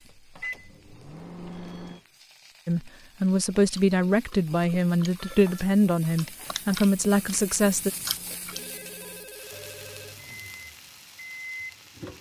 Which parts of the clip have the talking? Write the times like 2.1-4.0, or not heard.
2.6-7.9.